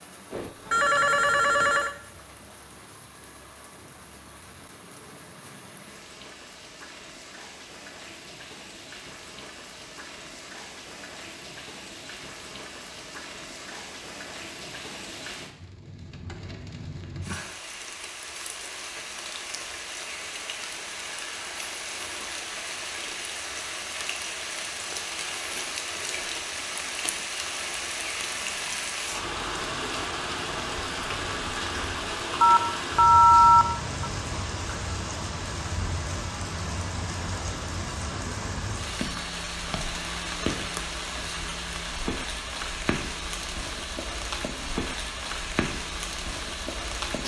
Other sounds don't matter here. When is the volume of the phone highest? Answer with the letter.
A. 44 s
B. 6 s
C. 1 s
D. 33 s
D.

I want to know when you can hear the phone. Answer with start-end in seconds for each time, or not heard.
0.3-1.9, 32.4-34.1.